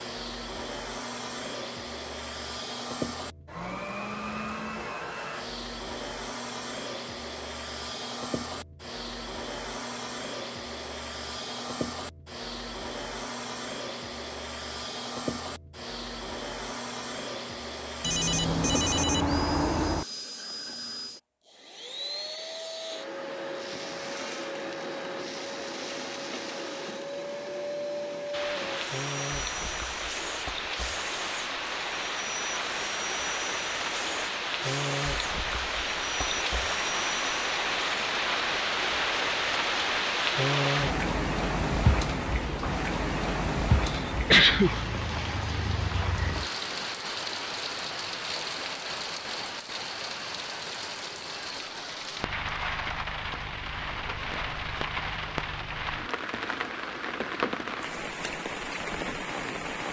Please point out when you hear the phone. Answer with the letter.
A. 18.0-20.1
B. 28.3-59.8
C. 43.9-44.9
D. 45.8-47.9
A.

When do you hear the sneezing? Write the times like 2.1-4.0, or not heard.
43.9-44.9.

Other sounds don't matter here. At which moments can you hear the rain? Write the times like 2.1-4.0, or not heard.
28.3-59.8.